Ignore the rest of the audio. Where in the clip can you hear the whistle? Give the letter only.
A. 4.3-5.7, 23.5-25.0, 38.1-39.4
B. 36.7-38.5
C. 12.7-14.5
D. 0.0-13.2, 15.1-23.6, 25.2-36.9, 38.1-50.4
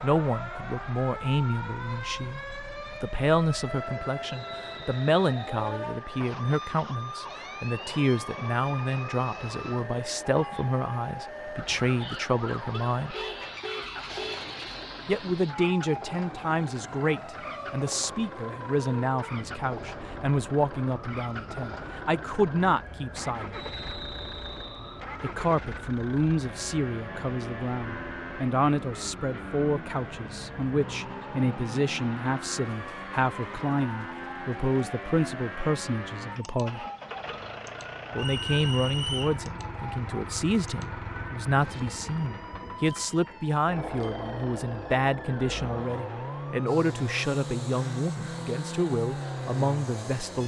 A.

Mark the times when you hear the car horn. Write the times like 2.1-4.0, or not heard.
12.7-14.5.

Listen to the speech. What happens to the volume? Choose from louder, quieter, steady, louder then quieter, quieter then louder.
steady.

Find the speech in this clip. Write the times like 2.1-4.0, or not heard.
0.0-13.2, 15.1-23.6, 25.2-36.9, 38.1-50.4.